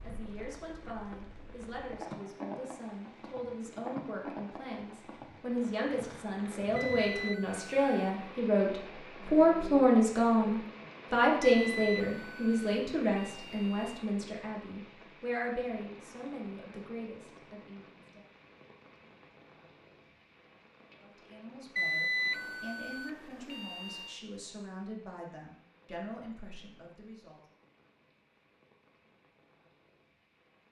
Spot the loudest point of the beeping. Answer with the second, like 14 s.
22 s.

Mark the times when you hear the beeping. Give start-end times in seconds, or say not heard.
6.8-8.2, 11.4-14.0, 21.8-24.2.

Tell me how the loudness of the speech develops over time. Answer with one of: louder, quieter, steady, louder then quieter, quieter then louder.
louder then quieter.